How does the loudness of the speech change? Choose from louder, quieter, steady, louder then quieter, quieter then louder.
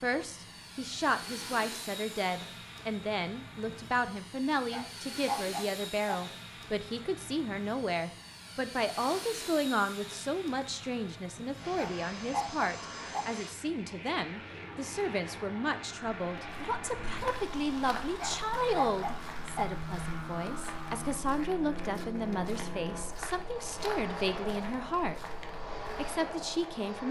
steady.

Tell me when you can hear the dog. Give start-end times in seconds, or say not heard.
4.7-6.2, 11.8-13.2, 18.1-19.6.